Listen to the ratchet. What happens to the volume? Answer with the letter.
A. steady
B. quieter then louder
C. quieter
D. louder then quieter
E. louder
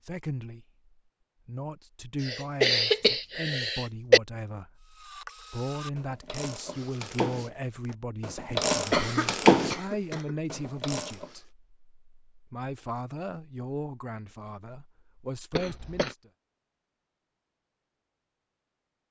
D.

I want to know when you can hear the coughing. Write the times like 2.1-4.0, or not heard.
2.2-4.2, 8.9-10.3, 15.5-16.1.